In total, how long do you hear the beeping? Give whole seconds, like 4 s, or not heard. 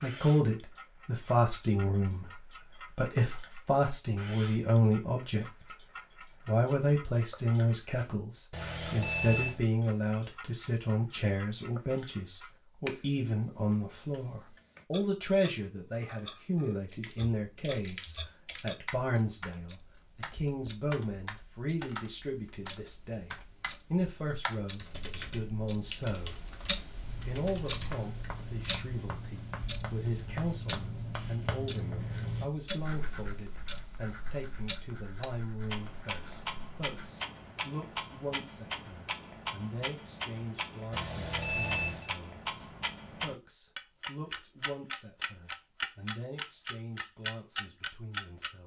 2 s.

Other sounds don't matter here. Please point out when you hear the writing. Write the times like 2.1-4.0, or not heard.
27.0-37.1.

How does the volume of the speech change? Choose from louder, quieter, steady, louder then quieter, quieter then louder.
quieter.